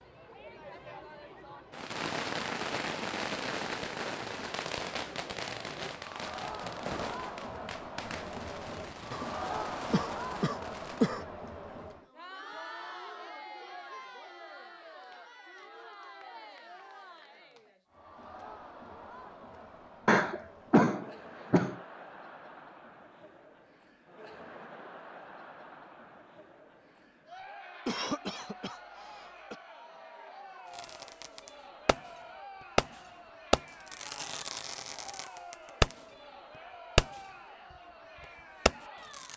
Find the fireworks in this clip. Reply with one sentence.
The fireworks can be heard from 1.7 to 11.2 s, from 30.7 to 32.1 s, from 32.8 to 36.0 s and from 37.0 to 39.3 s.